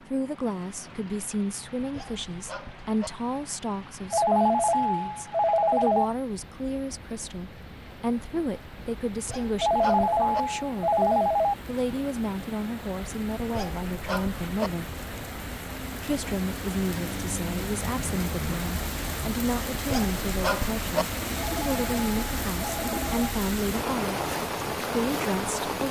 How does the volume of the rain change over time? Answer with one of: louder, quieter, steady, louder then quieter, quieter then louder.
louder.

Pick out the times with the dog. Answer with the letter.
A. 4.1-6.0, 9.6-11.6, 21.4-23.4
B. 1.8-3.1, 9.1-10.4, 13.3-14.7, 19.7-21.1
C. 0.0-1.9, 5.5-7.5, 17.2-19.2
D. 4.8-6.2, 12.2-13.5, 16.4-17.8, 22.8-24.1
B.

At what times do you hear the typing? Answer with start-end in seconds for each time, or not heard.
not heard.